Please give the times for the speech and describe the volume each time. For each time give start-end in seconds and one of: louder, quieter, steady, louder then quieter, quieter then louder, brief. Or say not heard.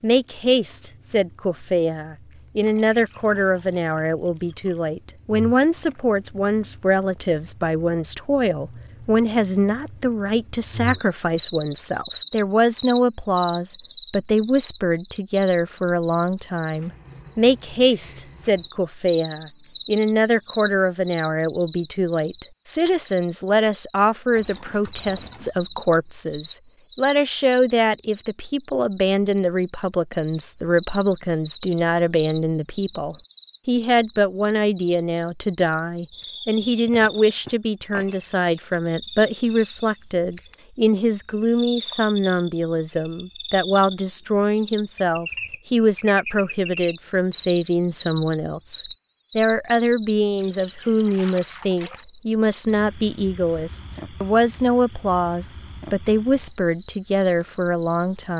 0.0-58.3 steady.